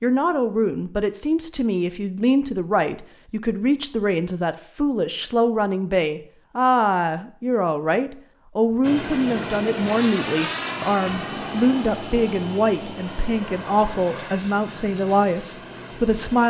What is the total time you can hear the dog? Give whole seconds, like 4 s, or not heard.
not heard.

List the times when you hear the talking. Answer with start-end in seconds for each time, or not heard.
0.0-16.4.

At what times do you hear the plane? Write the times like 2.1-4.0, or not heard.
8.8-16.4.